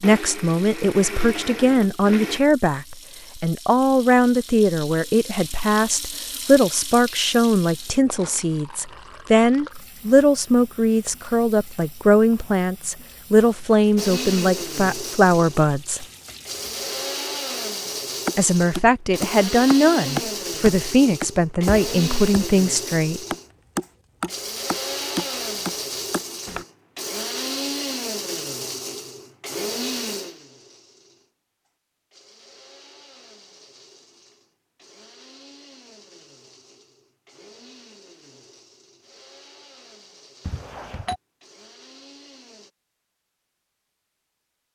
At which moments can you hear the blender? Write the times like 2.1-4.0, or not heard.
0.0-2.4, 13.9-42.7.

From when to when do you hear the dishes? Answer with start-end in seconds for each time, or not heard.
not heard.